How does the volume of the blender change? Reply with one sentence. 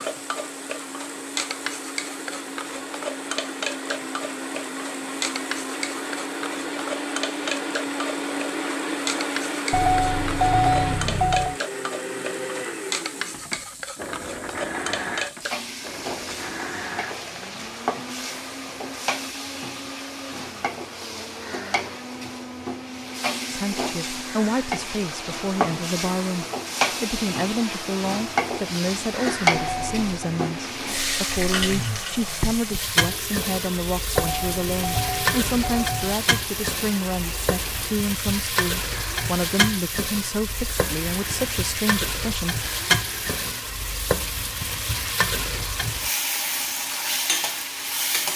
The loudness of the blender goes down.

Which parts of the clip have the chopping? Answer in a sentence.
You can't hear the chopping here.